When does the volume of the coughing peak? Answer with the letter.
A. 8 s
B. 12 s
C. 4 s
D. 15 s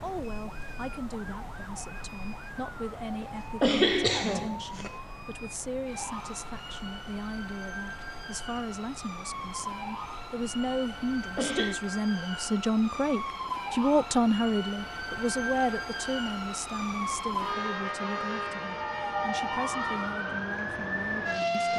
C.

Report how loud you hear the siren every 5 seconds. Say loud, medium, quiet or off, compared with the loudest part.
quiet, medium, medium, loud, loud.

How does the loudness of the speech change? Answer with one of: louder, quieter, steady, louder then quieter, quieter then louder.
louder then quieter.